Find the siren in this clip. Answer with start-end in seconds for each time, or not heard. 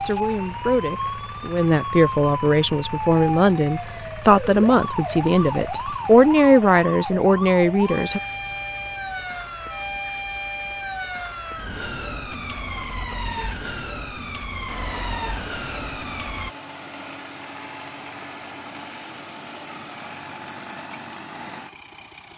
0.0-16.5.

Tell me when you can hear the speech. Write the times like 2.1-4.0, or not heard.
0.0-8.2.